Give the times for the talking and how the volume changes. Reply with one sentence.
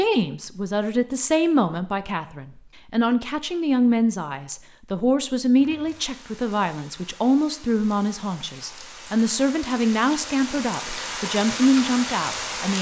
The talking can be heard from 0.0 to 12.7 s, at a steady volume.